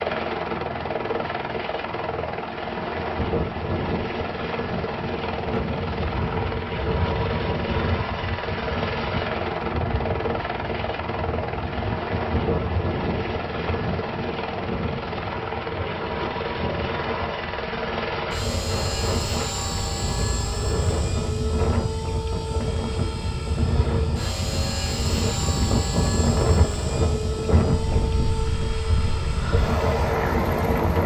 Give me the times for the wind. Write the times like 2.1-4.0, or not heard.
5.2-31.0.